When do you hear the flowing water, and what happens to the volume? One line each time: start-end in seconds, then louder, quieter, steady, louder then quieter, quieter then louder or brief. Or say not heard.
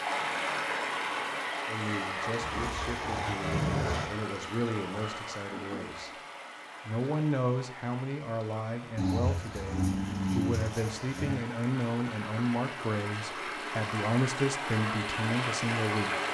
0.0-16.2 quieter then louder.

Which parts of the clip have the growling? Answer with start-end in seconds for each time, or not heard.
2.4-4.1, 8.9-11.4.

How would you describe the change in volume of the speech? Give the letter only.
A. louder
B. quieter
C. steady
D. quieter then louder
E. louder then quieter
A.